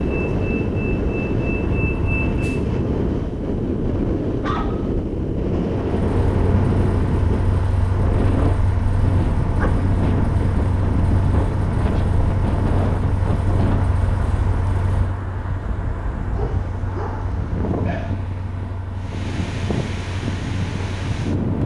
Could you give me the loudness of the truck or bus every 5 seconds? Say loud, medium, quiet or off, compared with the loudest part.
loud, loud, loud, medium, medium.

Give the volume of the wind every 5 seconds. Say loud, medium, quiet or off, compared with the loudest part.
loud, loud, loud, medium, loud.